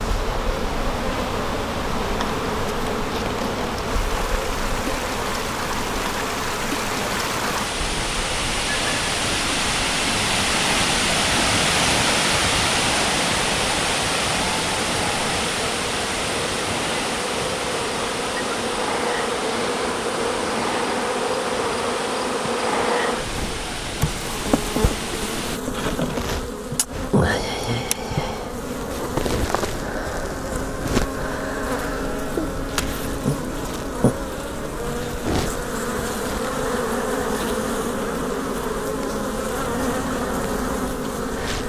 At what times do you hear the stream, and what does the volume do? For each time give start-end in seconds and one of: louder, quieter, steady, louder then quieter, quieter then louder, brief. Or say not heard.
0.0-25.6 louder then quieter.